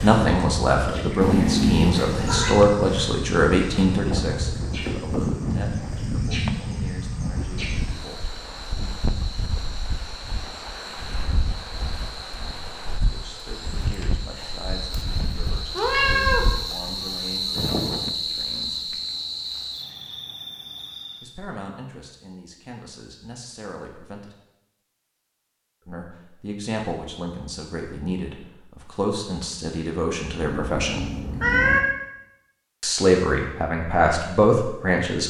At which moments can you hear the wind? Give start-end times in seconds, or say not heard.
0.0-18.1.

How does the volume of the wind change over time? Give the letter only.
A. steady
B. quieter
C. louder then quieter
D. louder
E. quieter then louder
B.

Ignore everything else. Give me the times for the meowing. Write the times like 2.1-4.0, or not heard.
1.2-2.5, 15.8-16.5, 30.4-31.8.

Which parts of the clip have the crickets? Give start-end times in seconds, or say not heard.
0.0-21.4.